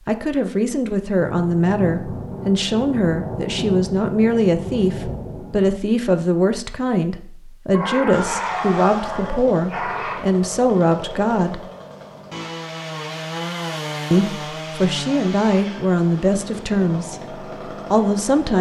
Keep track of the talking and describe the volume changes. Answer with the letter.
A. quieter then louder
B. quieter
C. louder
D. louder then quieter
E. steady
E.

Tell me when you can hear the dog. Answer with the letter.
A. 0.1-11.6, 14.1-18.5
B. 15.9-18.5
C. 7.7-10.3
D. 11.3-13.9
C.